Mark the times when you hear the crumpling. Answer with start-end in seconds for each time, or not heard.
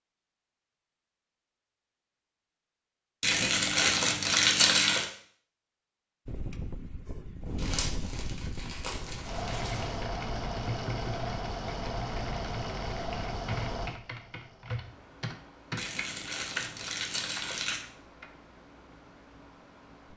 3.2-5.0, 7.5-10.0, 15.8-17.8.